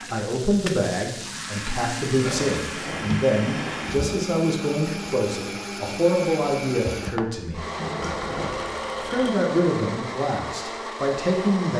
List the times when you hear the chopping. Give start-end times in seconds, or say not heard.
not heard.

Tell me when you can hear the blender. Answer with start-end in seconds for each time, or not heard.
0.0-11.7.